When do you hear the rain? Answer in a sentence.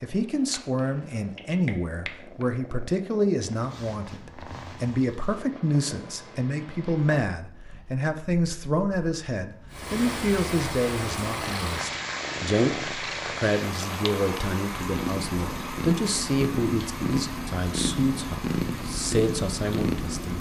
You can hear the rain from 9.7 to 20.3 s.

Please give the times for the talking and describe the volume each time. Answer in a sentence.
You can hear the talking from 0.0 to 20.3 s, at a steady volume.